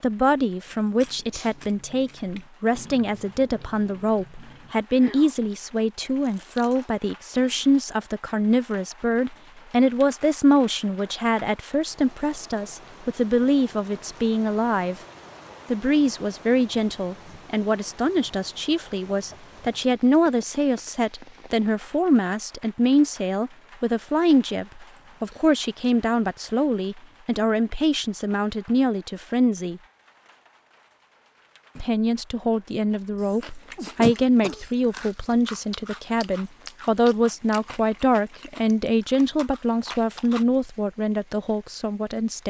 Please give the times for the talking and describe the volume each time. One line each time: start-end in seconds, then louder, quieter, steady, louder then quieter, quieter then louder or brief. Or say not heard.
0.0-15.0 steady
15.7-29.8 steady
31.8-42.4 steady.